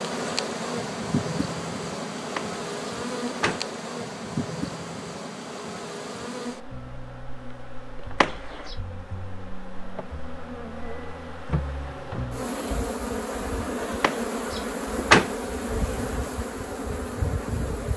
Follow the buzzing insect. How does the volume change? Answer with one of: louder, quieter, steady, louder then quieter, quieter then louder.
quieter then louder.